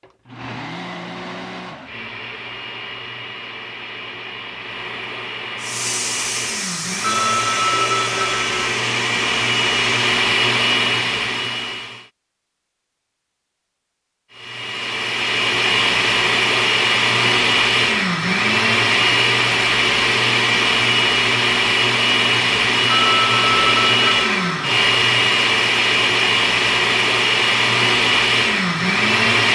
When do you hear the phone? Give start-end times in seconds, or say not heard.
7.0-8.8, 22.9-24.4.